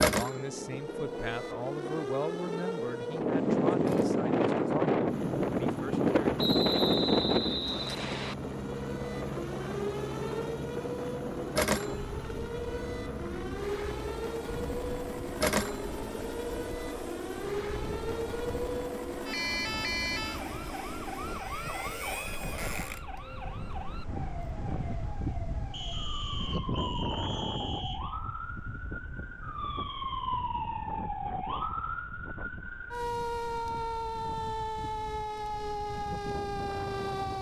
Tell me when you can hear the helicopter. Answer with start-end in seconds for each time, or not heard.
5.0-21.4.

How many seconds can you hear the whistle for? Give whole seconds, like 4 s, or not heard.
4 s.